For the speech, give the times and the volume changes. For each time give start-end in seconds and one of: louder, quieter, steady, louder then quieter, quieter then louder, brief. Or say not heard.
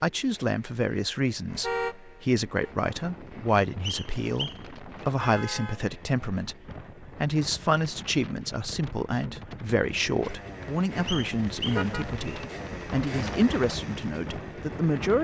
0.0-15.1 steady.